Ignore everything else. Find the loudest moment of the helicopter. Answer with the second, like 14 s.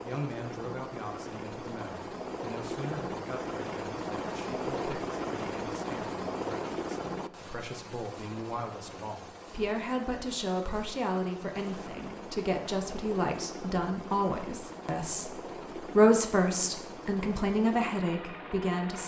5 s.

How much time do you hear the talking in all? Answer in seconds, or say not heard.
18 s.